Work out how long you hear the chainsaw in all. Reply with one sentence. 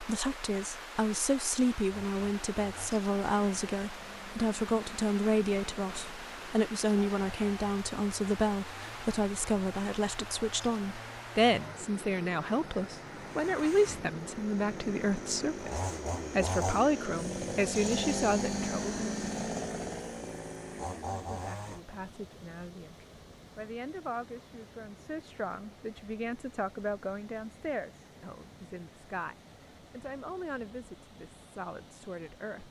You can hear the chainsaw for 20 seconds altogether.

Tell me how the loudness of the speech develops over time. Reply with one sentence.
The loudness of the speech goes down.